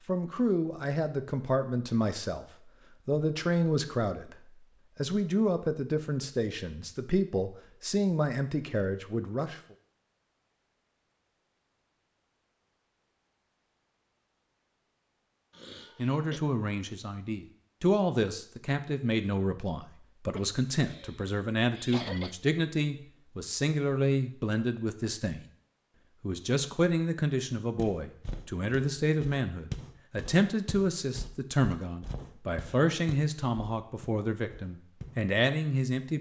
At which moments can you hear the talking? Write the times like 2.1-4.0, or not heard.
0.1-2.5, 3.0-4.3, 5.0-9.6, 15.9-25.4, 26.2-36.1.